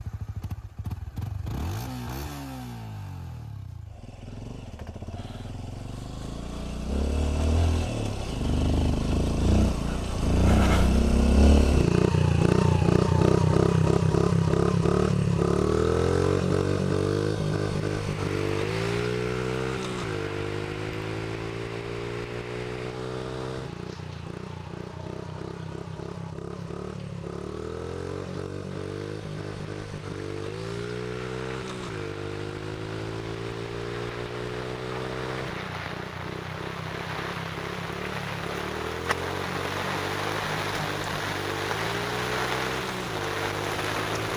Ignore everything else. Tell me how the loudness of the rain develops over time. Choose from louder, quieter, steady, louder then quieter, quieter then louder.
quieter then louder.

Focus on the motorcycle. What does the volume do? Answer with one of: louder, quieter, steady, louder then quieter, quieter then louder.
louder then quieter.